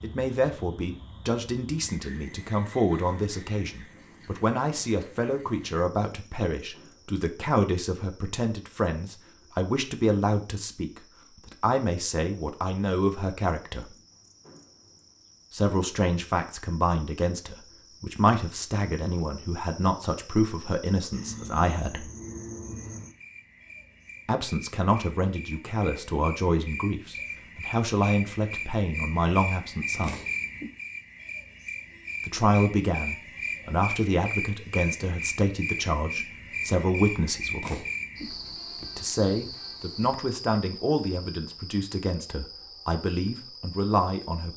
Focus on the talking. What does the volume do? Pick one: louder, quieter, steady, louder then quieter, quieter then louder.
steady.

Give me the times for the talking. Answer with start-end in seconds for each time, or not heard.
0.0-13.9, 15.5-22.1, 24.2-30.1, 32.2-37.9, 38.8-44.5.